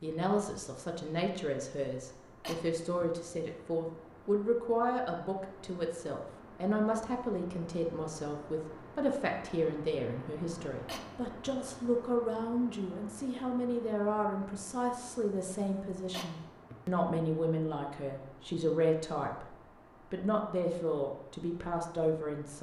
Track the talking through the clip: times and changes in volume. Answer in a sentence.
The talking can be heard from 0.0 to 19.5 s, at a steady volume; and briefly from 20.1 to 22.5 s.